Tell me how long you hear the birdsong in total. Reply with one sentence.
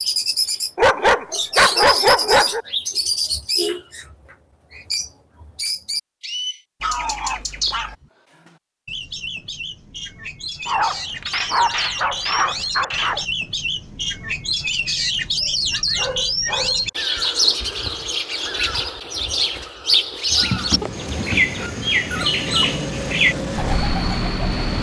The birdsong can be heard for 25 seconds in total.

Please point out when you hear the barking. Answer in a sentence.
You can hear the barking from 0.8 to 2.6 s, from 6.8 to 8.0 s, from 10.7 to 13.2 s, from 15.4 to 16.8 s and from 20.3 to 22.7 s.